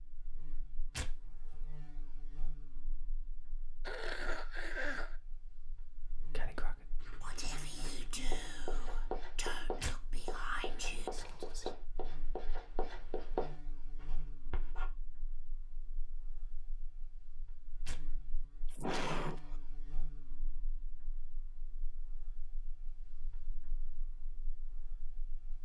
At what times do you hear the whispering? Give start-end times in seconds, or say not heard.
6.3-11.8.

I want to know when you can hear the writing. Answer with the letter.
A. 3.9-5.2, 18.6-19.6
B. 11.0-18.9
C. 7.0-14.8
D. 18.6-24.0
C.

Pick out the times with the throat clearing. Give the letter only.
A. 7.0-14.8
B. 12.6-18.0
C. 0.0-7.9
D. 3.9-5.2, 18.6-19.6
D.